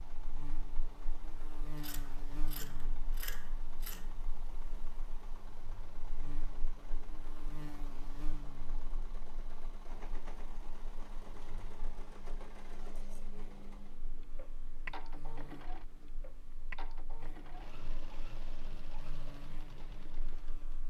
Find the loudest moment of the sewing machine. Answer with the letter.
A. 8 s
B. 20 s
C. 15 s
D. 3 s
C.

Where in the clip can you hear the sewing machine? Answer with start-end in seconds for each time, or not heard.
0.0-20.8.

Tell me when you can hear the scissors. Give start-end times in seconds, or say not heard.
1.8-4.2.